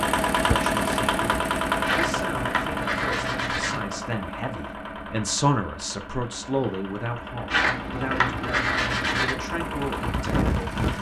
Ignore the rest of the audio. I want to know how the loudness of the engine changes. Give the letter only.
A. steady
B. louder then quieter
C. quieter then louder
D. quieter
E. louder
C.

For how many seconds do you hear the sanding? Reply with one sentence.
The sanding can be heard for 4 seconds in total.